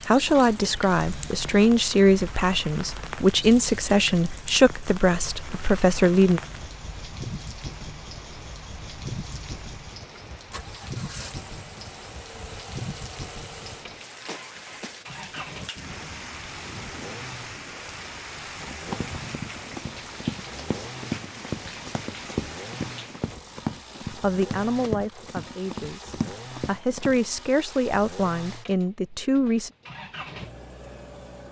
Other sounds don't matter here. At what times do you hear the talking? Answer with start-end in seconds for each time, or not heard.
0.1-6.4, 24.1-29.7.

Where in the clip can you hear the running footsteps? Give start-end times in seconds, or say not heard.
18.6-27.2.